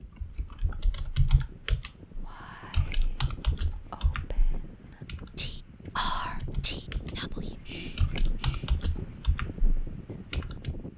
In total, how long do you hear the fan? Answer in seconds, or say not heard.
11 s.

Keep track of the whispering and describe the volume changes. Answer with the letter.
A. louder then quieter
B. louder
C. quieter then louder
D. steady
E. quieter
A.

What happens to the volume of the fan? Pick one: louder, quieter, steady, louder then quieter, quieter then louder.
louder.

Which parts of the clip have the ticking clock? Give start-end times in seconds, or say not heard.
not heard.